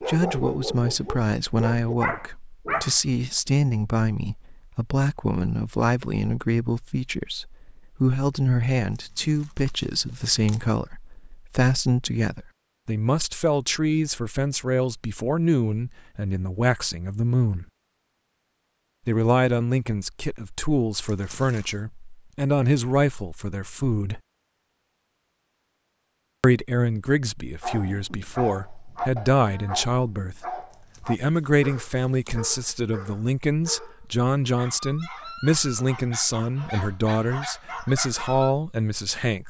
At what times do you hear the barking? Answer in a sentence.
The barking can be heard from 0.0 to 3.0 s and from 27.6 to 38.5 s.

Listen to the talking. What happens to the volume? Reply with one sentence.
The volume of the talking stays about the same.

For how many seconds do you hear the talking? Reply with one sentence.
The talking can be heard for 36 seconds in total.